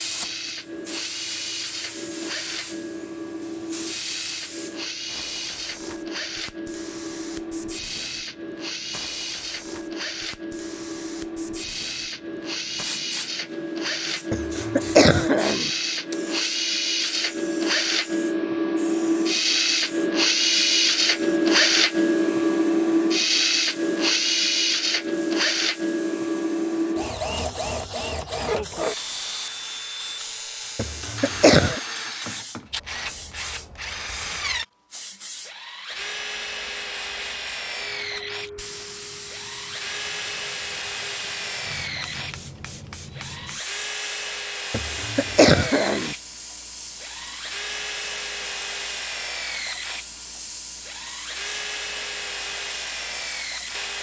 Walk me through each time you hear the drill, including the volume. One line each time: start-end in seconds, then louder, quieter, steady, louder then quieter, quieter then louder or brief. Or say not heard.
0.0-53.9 louder then quieter.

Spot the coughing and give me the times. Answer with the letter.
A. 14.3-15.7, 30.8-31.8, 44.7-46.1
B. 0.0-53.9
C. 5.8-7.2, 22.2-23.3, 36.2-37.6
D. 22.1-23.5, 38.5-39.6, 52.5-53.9
A.